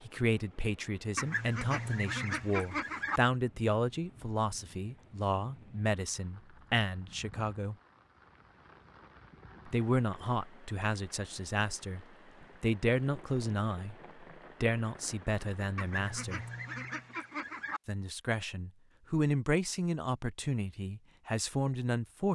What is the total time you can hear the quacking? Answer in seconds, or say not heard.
4 s.